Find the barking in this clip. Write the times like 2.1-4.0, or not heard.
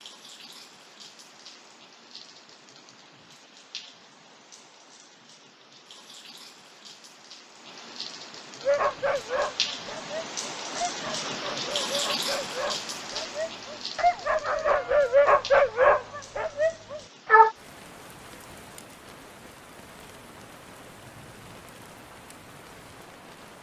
8.6-17.6.